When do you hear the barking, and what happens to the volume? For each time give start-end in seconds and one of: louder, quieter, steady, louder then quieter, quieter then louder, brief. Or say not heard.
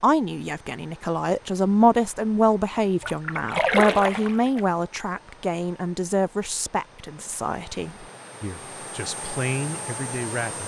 not heard.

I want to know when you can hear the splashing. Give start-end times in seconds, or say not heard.
3.0-4.7.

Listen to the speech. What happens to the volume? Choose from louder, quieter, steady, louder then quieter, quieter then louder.
quieter.